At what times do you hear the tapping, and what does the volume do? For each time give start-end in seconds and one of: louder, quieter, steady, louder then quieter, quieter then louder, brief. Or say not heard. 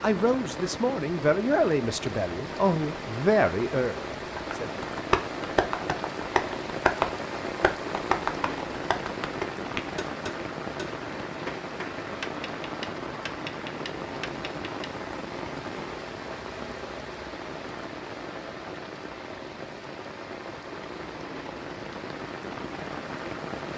4.3-14.9 quieter.